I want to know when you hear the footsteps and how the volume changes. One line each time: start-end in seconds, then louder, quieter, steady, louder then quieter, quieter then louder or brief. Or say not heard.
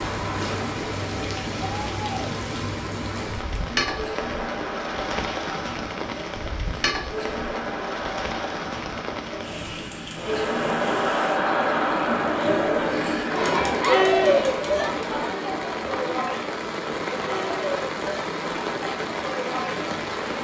not heard.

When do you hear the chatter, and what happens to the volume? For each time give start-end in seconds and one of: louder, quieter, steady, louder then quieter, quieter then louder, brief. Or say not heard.
0.0-20.3 louder then quieter.